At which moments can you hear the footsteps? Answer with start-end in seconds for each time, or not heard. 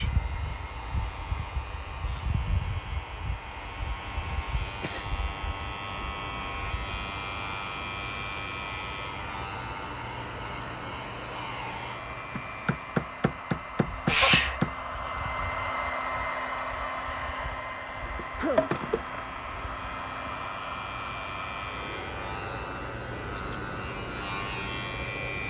not heard.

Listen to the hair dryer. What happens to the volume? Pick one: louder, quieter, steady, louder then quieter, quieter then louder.
louder then quieter.